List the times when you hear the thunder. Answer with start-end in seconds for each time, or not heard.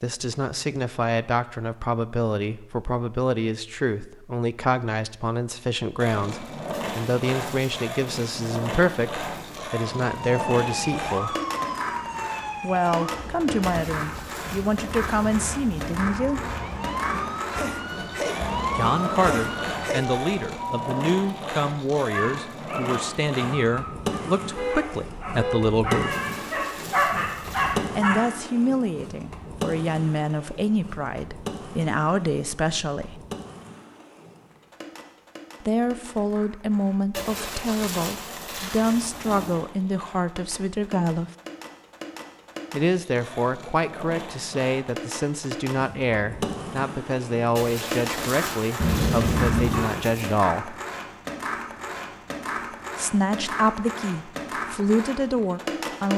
not heard.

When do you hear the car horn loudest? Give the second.
49 s.